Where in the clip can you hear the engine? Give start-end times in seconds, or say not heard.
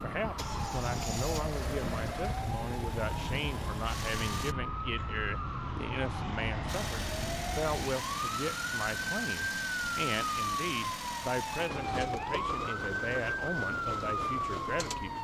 0.0-4.5, 6.7-15.1.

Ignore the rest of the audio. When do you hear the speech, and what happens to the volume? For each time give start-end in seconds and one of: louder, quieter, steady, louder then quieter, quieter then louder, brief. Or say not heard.
0.0-15.1 steady.